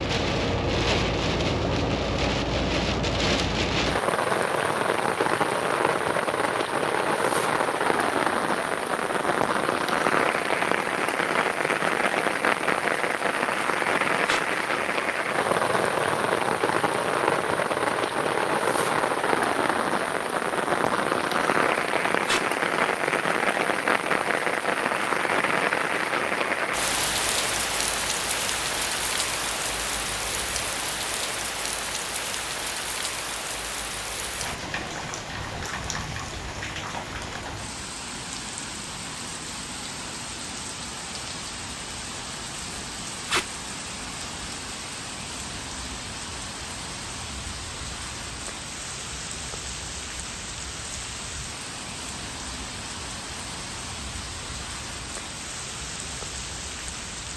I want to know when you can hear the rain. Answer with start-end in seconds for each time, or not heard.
0.0-57.3.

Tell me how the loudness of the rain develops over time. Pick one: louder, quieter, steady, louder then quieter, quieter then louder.
quieter.